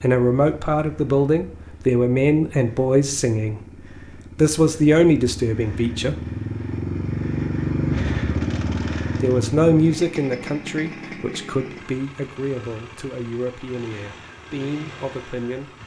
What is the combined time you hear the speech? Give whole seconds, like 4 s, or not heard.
12 s.